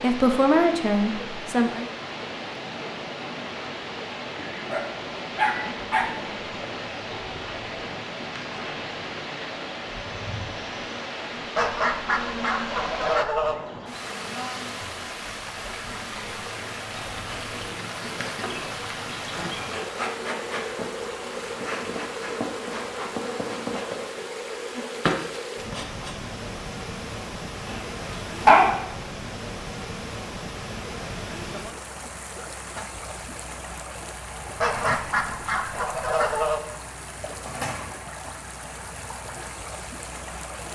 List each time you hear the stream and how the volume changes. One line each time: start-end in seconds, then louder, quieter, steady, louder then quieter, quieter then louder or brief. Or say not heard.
0.0-40.6 steady.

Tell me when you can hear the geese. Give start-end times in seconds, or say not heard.
11.6-13.6, 34.6-36.6.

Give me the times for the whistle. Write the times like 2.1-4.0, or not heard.
not heard.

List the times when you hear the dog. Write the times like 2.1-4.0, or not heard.
4.5-6.1, 27.6-28.9.